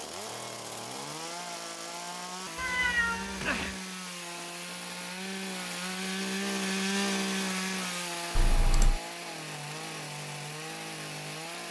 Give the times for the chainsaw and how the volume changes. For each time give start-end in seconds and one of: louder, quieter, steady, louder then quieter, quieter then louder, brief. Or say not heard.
0.0-11.6 louder then quieter.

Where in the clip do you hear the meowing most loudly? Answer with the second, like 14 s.
3 s.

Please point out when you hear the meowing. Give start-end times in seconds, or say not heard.
2.5-3.8, 8.3-9.0.